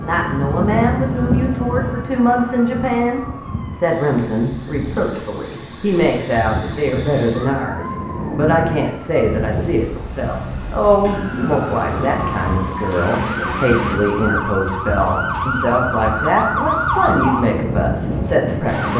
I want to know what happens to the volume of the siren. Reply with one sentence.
The loudness of the siren goes up.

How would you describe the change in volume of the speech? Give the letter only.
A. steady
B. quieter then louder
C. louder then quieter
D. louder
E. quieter
A.